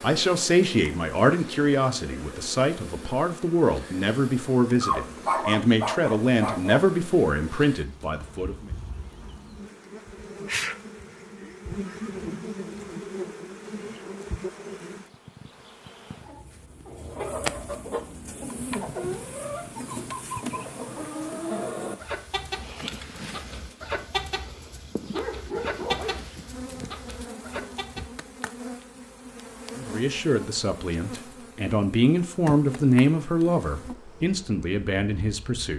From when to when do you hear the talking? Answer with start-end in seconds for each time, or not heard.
0.0-8.7, 29.8-35.7.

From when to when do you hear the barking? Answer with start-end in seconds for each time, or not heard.
4.8-6.8, 24.4-26.2.